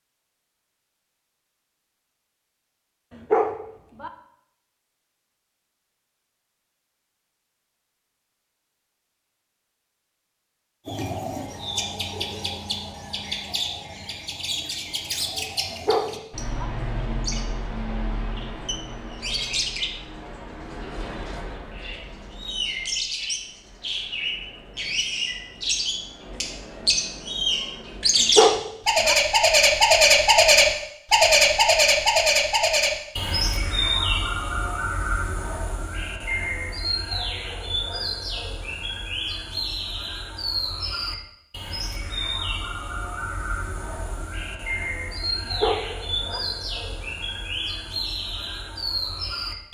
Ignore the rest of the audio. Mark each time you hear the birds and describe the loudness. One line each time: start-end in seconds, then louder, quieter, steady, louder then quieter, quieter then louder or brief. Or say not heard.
10.8-49.6 louder then quieter.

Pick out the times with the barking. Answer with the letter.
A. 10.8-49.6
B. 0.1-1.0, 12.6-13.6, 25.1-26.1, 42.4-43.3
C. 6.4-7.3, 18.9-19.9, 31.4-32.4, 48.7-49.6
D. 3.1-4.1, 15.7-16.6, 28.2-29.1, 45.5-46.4
D.